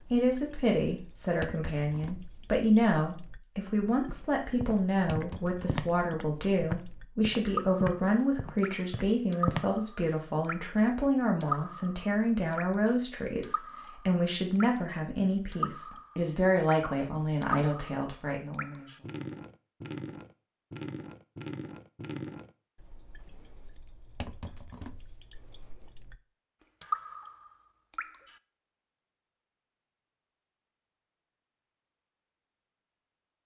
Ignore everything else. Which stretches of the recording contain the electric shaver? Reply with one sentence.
The electric shaver can't be heard in this clip.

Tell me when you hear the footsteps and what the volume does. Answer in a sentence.
You can hear the footsteps from 4.0 to 9.7 s, getting louder then quieter.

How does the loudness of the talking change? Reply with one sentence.
The volume of the talking stays about the same.